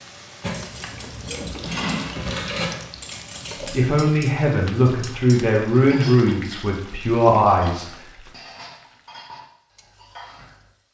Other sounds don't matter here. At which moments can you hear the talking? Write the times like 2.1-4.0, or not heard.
3.6-7.9.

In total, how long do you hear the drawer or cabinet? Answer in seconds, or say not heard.
2 s.